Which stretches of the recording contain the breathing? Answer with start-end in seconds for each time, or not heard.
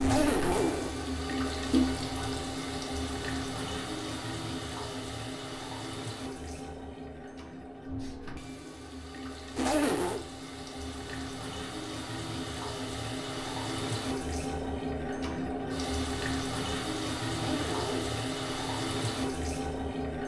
not heard.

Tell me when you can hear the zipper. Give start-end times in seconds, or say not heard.
0.0-0.9, 9.6-10.2, 17.4-18.2.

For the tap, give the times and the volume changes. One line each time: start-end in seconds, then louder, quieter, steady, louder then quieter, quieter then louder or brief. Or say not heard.
0.0-20.2 quieter then louder.